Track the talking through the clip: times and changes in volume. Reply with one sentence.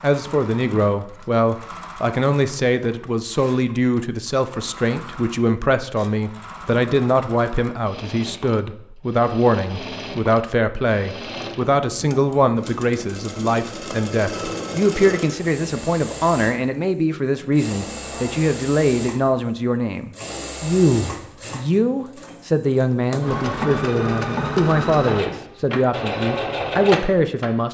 You can hear the talking from 0.0 to 27.7 s, at a steady volume.